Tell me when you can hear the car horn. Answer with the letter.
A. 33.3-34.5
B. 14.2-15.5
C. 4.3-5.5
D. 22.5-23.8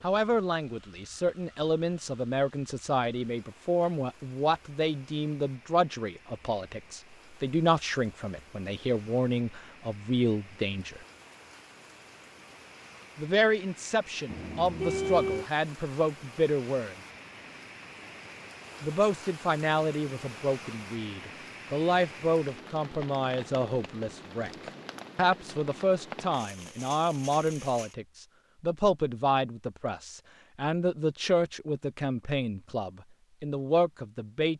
B.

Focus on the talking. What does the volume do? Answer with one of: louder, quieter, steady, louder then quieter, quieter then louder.
steady.